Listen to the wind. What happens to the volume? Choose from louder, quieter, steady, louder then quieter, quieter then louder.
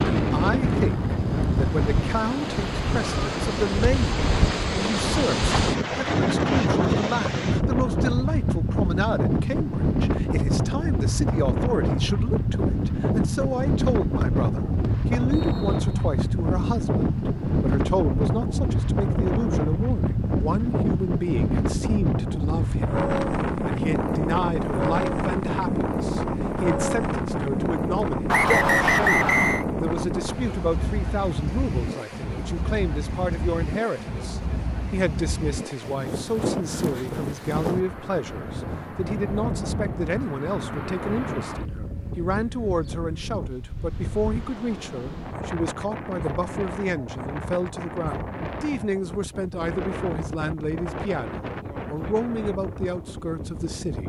quieter.